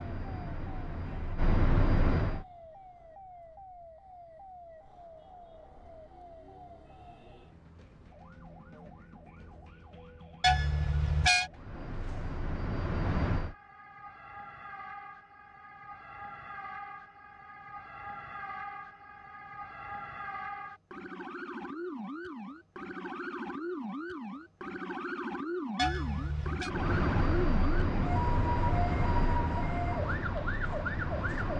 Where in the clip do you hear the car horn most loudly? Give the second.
11 s.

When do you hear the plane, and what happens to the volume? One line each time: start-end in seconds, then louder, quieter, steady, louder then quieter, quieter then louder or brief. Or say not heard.
0.0-2.5 brief
11.5-13.6 brief
26.6-31.5 quieter.